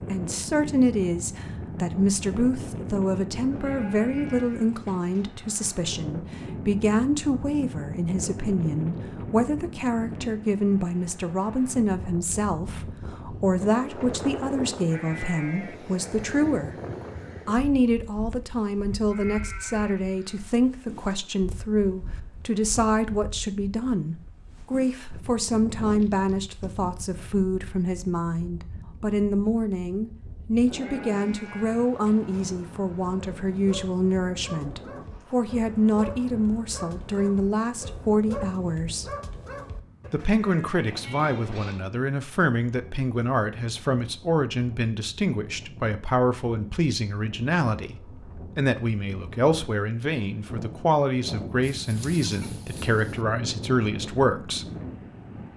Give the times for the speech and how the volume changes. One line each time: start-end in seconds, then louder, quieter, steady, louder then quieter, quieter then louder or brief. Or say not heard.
0.1-16.8 steady
17.4-39.1 steady
40.1-54.6 steady.